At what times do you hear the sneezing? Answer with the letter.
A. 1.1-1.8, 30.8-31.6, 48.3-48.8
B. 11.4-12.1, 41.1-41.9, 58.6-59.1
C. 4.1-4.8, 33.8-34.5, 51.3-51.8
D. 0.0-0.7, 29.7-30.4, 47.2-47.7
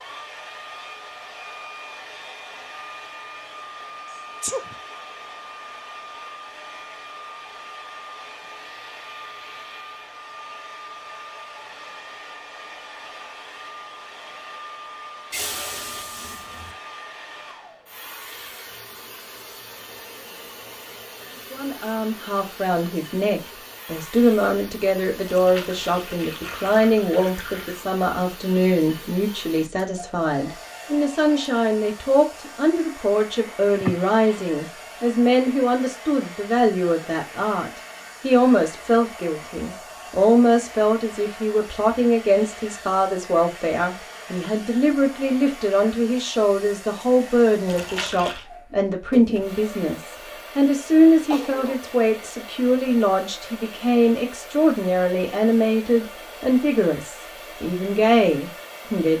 C.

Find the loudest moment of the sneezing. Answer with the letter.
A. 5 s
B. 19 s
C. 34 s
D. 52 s
C.